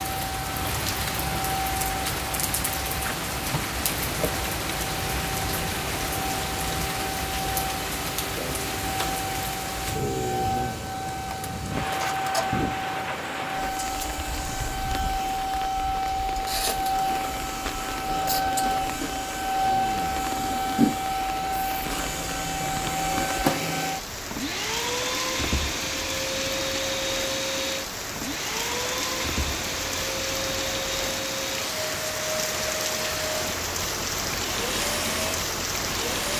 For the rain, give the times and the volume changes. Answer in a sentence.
The rain can be heard from 0.0 to 36.3 s, getting quieter then louder.